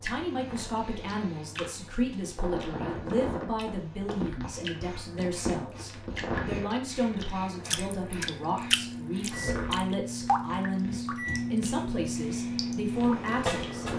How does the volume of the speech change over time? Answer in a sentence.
The loudness of the speech stays about the same.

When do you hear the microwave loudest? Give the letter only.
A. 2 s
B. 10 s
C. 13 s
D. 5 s
C.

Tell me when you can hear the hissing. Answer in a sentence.
You can hear the hissing from 0.0 to 13.9 s.